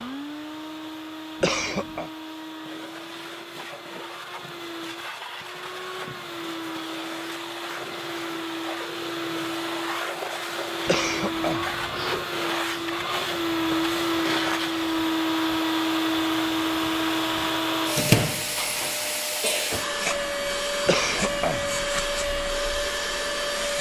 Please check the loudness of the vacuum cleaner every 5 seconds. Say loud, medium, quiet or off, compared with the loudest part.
quiet, medium, loud, loud, loud.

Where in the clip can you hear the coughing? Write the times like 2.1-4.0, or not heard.
1.4-2.1, 10.8-12.2, 20.9-21.9.